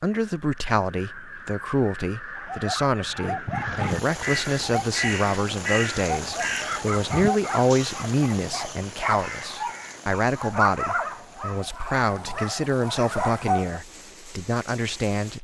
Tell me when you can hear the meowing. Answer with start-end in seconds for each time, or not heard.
not heard.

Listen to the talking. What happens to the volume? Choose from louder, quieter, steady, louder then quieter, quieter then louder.
steady.